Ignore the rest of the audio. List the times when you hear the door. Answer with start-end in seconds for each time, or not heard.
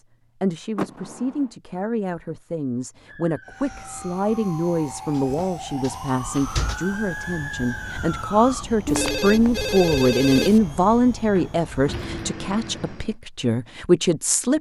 0.8-1.5, 5.2-6.8, 11.3-12.2.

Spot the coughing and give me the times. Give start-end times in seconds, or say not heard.
not heard.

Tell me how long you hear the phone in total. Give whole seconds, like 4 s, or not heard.
2 s.